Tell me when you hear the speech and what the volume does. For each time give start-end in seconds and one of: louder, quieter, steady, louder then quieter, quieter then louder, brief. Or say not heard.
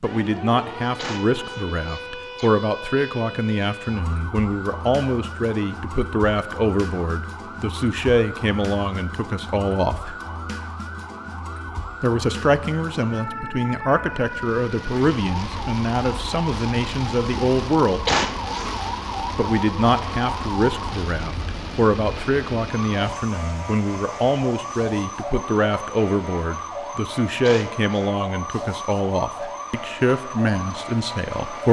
0.0-10.2 steady
12.0-18.1 steady
19.4-31.6 steady.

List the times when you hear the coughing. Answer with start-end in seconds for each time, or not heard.
0.9-3.1, 18.1-18.8, 27.4-28.1.